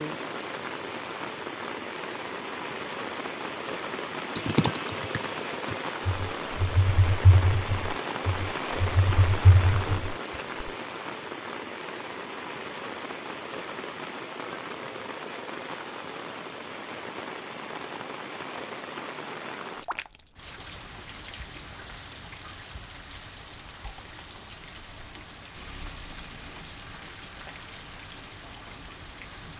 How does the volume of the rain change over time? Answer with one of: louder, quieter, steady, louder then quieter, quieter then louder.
quieter.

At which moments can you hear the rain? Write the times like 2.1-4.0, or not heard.
0.0-29.5.